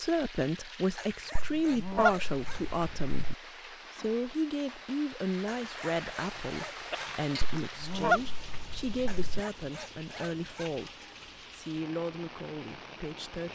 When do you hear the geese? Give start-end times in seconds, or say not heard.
1.4-3.4, 7.6-9.4.